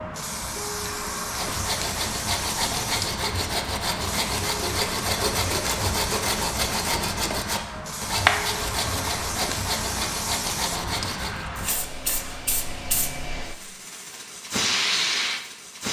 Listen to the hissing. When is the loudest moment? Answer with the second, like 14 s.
15 s.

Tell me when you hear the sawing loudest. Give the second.
8 s.